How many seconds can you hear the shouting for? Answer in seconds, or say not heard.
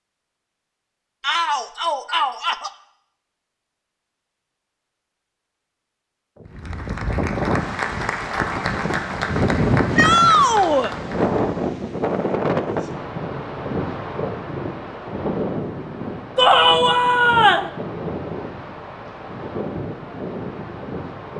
4 s.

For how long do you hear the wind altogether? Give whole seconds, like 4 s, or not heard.
15 s.